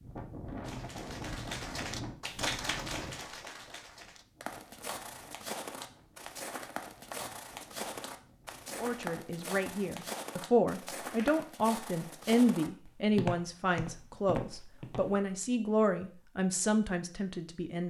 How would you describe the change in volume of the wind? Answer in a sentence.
The loudness of the wind goes down.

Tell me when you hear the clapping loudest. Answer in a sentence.
The volume of the clapping peaks at 3 seconds.